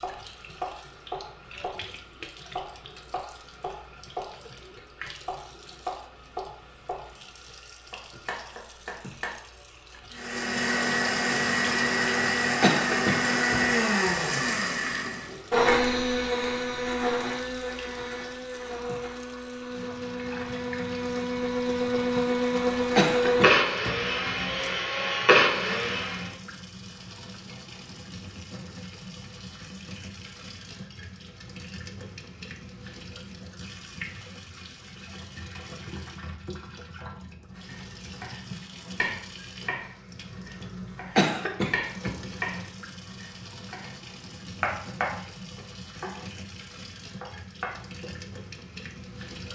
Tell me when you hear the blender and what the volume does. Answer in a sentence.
The blender can be heard from 10.1 to 26.4 s, getting quieter then louder.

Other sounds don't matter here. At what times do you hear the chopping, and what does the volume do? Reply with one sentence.
You can hear the chopping from 0.0 to 9.3 s, at a steady volume; from 37.5 to 44.0 s, getting quieter then louder; briefly from 44.6 to 46.2 s; and briefly from 47.2 to 48.1 s.